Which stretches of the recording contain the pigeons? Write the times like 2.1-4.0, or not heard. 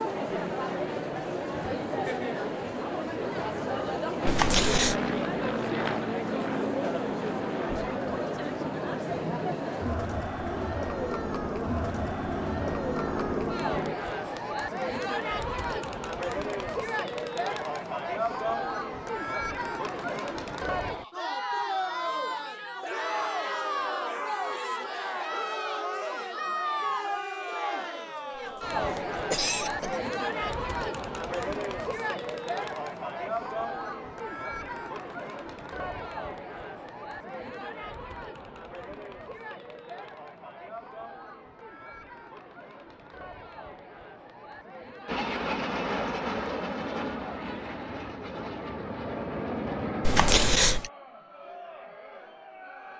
not heard.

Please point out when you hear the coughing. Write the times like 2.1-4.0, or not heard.
4.2-5.0, 28.4-30.0, 50.0-50.9.